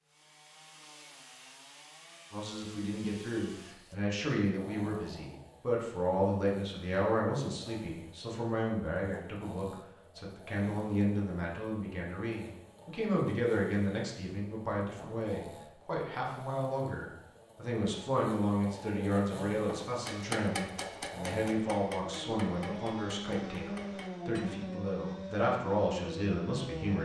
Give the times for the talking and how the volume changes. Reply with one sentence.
You can hear the talking from 2.3 to 26.9 s, at a steady volume.